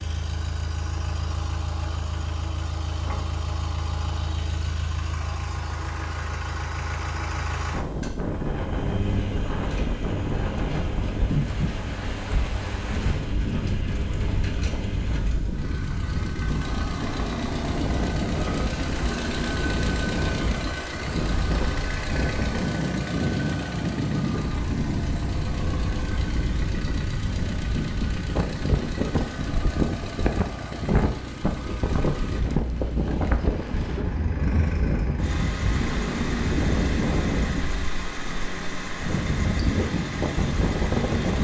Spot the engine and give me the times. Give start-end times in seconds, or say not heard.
0.0-41.3.